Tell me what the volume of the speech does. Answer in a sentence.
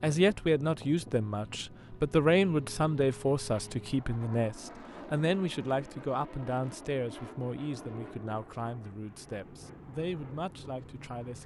The loudness of the speech goes down.